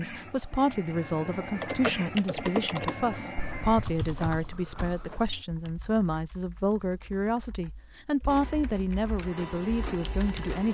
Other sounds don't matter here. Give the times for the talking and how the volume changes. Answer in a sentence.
The talking can be heard from 0.0 to 10.6 s, at a steady volume.